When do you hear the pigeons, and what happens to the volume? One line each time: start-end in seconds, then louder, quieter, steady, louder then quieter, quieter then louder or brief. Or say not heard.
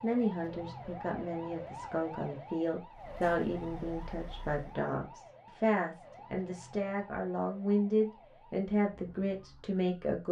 not heard.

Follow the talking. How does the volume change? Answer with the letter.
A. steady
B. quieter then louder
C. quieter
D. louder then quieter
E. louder
E.